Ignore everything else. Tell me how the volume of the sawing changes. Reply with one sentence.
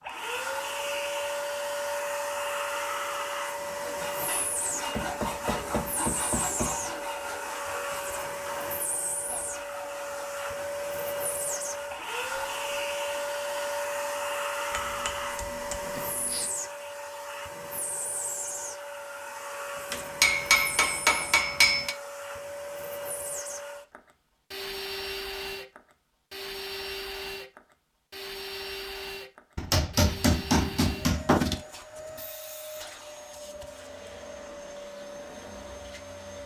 The volume of the sawing goes down.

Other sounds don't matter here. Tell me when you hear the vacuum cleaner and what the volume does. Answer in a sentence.
The vacuum cleaner can be heard from 0.0 to 36.4 s, getting quieter.